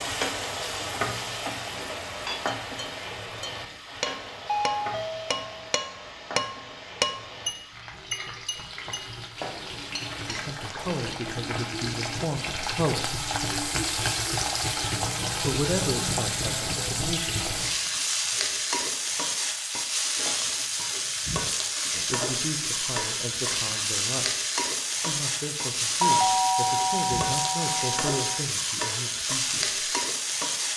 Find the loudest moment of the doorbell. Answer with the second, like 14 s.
26 s.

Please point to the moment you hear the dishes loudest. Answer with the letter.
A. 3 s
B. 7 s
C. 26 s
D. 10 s
B.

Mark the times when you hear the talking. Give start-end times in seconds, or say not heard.
10.2-13.2, 15.4-17.5, 21.9-24.4, 25.1-29.9.